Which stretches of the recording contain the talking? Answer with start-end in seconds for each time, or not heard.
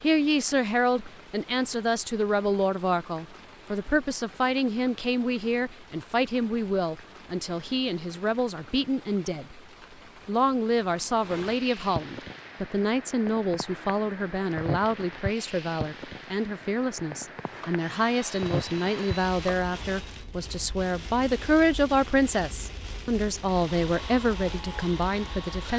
0.0-9.6, 10.2-25.7.